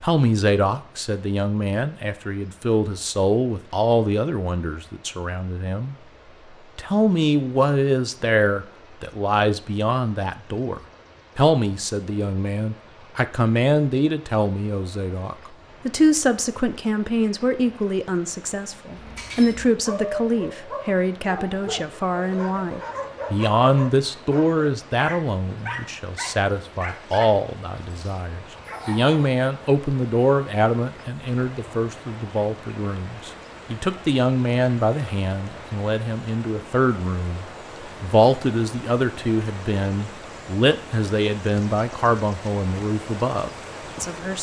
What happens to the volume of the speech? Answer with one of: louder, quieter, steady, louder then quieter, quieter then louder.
steady.